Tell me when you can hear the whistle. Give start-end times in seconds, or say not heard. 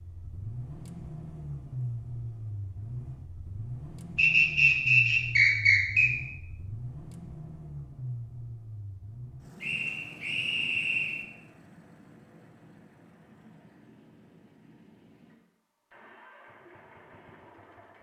4.2-6.1, 9.6-11.2.